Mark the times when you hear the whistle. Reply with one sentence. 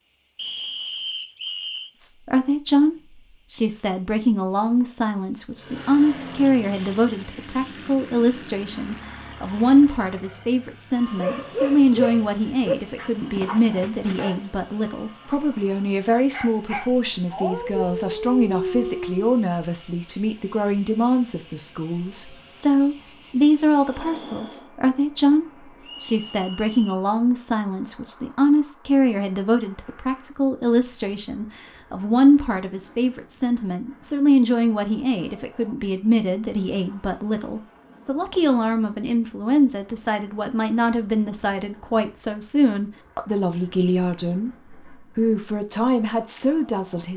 The whistle can be heard from 0.3 to 1.9 s and from 25.8 to 27.1 s.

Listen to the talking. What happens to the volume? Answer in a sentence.
The loudness of the talking stays about the same.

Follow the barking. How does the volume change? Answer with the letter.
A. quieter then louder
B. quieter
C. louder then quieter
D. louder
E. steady
A.